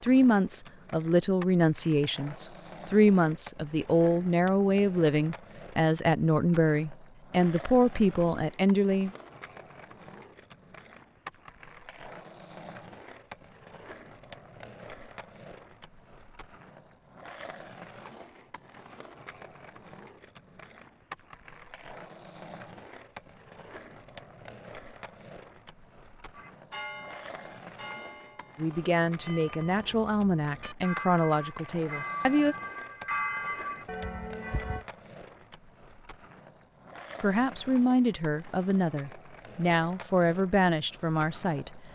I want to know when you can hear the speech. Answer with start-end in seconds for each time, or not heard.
0.0-9.1, 28.6-32.5, 37.2-41.9.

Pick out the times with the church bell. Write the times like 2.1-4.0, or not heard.
26.4-34.9.